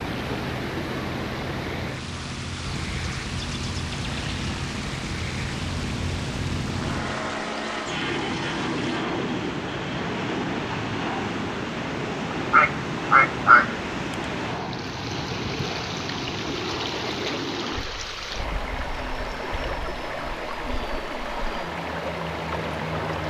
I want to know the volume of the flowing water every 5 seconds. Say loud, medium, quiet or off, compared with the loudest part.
loud, medium, loud, loud, loud.